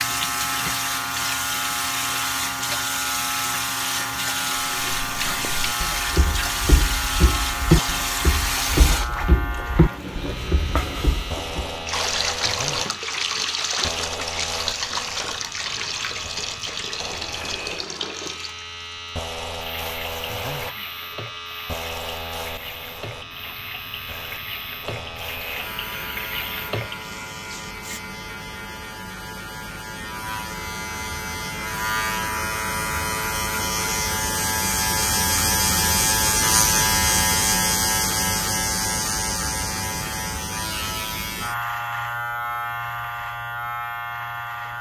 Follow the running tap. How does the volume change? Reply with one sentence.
The loudness of the running tap goes down.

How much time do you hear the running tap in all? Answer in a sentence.
You can hear the running tap for 28 seconds altogether.